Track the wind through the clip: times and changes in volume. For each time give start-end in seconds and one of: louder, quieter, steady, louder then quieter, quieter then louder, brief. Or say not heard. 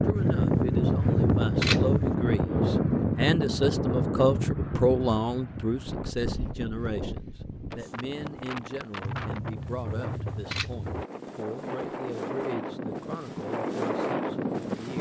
0.0-14.9 quieter then louder.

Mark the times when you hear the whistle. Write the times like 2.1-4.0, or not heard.
not heard.